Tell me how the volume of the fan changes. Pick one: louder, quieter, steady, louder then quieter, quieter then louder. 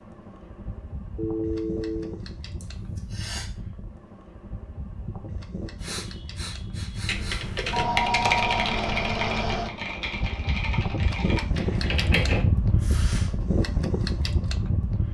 louder.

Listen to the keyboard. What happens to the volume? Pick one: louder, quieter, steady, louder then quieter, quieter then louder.
quieter.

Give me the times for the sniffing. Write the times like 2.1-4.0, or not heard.
2.6-3.5, 5.8-7.5, 12.8-13.3.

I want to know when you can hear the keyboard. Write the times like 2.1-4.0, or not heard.
7.0-12.4.